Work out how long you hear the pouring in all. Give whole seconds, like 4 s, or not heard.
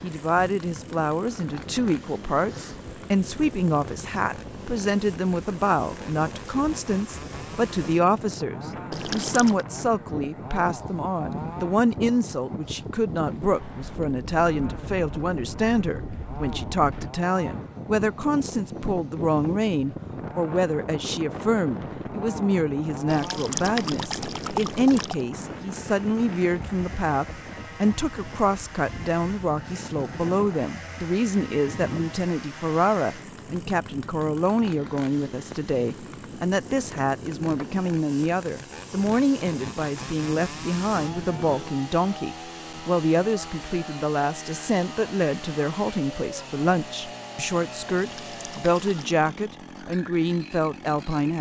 4 s.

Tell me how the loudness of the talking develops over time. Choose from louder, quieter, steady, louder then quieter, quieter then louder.
steady.